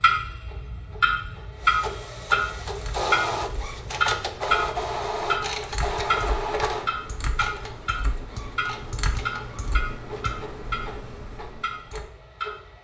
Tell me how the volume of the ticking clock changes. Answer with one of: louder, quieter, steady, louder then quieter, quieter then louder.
quieter.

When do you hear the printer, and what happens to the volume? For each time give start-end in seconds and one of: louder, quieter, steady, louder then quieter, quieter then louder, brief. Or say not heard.
0.0-12.8 louder then quieter.